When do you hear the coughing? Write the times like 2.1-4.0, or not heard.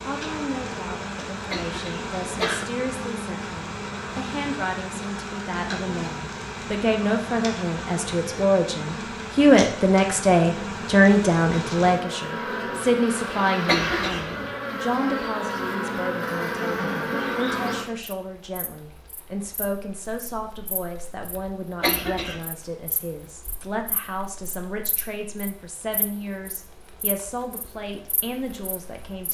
1.5-2.6, 13.7-14.6, 21.8-22.4.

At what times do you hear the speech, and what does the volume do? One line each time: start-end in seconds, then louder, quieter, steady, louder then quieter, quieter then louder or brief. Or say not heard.
0.1-29.3 louder then quieter.